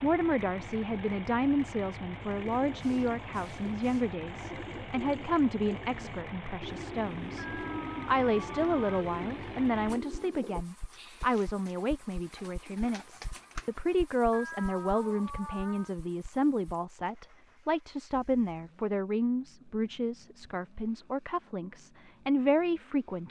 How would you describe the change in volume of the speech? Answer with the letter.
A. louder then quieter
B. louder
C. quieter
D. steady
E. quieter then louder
D.